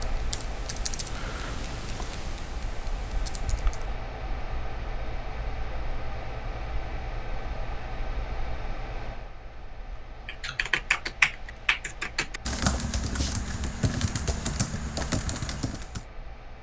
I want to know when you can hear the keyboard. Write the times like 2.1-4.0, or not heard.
0.0-4.0, 10.2-16.0.